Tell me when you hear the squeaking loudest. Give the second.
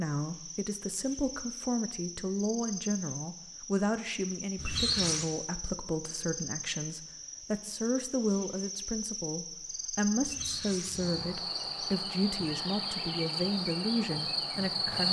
5 s.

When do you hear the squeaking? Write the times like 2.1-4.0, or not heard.
4.5-5.3, 10.2-11.3.